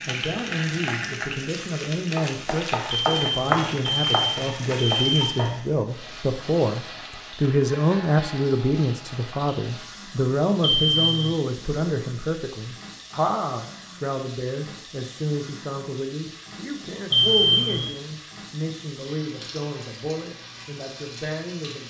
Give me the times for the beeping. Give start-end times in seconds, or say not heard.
2.9-5.5, 10.6-11.3, 17.1-17.9.